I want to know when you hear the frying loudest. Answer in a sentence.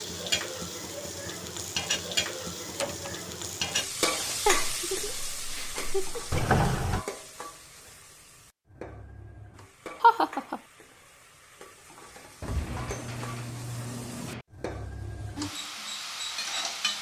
The volume of the frying peaks at 4 seconds.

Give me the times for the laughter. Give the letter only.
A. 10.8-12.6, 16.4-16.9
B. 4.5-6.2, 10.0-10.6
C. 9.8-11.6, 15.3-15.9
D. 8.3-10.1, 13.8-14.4
B.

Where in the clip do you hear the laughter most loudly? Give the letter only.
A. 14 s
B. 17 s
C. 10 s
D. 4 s
C.